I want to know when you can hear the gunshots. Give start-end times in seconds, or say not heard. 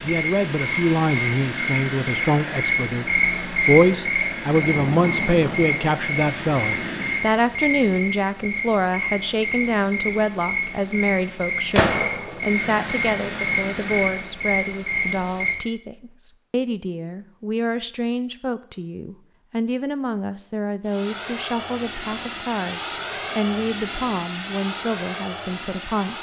11.8-12.4.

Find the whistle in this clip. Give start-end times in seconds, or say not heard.
not heard.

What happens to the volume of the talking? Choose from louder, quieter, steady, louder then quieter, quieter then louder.
quieter.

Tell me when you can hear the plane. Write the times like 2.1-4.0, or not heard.
0.0-7.3, 12.3-14.3, 20.9-26.1.